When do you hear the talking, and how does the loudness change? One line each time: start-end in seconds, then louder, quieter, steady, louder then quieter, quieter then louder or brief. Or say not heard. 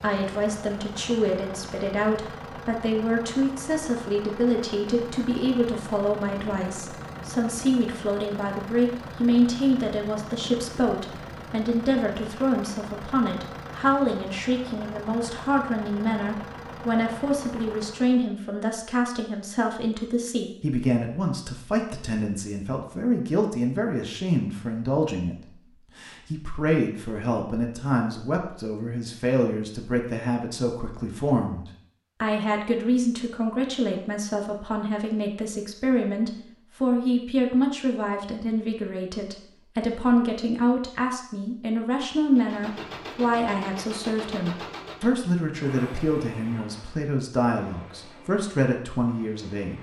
0.0-49.7 steady.